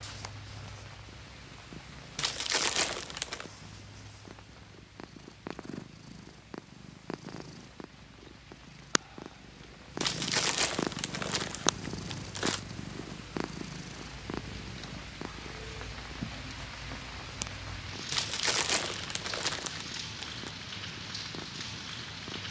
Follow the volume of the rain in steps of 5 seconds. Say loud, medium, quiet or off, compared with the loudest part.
medium, quiet, medium, loud, loud.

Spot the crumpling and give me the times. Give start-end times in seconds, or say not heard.
2.1-3.5, 10.0-12.6, 18.1-20.5.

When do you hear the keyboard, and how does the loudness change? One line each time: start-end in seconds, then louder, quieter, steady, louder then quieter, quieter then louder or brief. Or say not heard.
not heard.